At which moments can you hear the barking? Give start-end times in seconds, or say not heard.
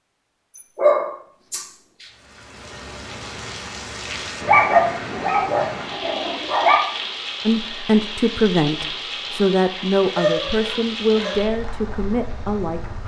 0.6-2.0, 4.5-6.8, 10.2-11.4.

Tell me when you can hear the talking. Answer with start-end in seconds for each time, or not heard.
7.5-13.0.